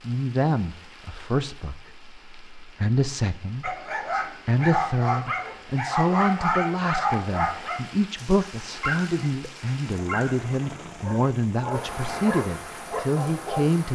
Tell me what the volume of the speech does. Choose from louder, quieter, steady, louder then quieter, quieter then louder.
steady.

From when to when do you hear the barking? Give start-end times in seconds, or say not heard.
3.6-13.7.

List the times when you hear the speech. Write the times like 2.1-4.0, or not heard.
0.0-3.8, 4.5-13.8.